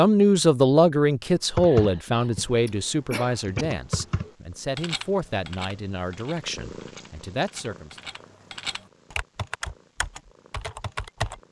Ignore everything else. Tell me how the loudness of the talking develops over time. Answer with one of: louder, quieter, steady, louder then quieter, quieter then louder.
quieter.